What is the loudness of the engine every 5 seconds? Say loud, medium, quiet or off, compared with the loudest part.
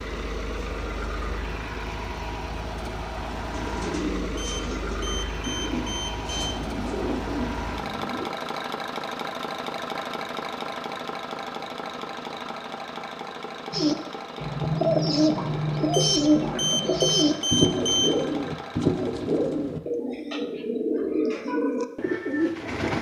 loud, loud, loud, medium, off.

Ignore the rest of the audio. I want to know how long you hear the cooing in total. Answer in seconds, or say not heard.
14 s.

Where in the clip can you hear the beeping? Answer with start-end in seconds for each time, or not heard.
4.3-6.7, 15.9-18.1.